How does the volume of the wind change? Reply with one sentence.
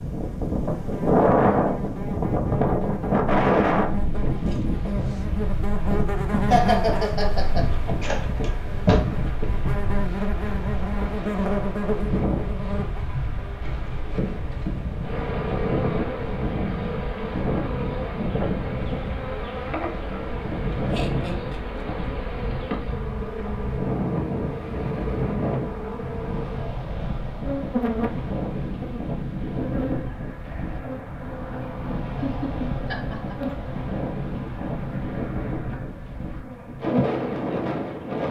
The volume of the wind goes down.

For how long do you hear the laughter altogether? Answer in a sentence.
The laughter can be heard for 3 seconds in total.